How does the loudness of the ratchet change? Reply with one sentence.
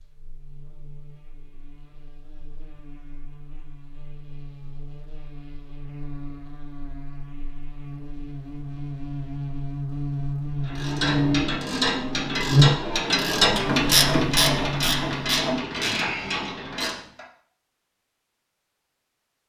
The volume of the ratchet goes up, then down.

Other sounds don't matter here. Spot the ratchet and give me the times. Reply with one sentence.
The ratchet can be heard from 10.7 to 17.2 s.